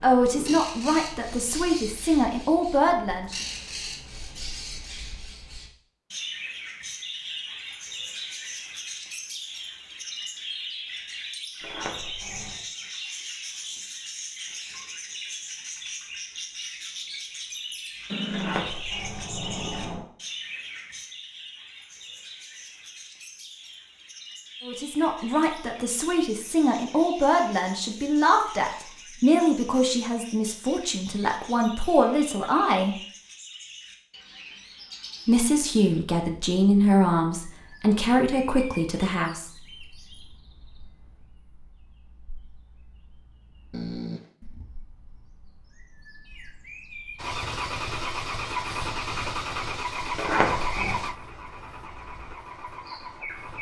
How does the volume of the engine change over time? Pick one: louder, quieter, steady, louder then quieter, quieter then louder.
quieter.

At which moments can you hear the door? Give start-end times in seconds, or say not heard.
11.6-12.6, 18.3-20.1, 50.1-51.0.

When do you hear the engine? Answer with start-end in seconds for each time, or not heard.
47.1-53.5.